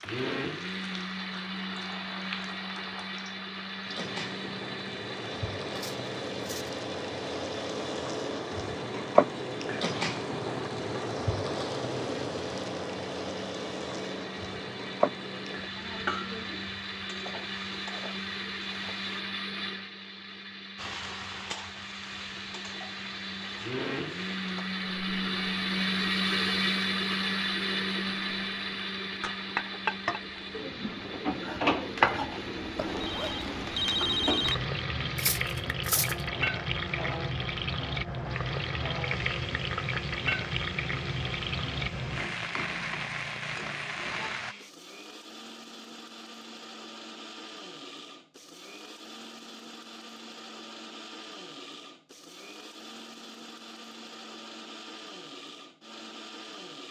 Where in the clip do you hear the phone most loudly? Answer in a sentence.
The volume of the phone peaks at 34 seconds.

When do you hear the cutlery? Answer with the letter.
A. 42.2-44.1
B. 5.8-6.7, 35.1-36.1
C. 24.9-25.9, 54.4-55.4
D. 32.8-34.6
B.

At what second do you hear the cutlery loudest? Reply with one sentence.
The volume of the cutlery peaks at 36 seconds.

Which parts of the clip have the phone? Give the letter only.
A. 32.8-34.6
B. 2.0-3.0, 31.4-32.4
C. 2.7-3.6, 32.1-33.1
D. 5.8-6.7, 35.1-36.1
A.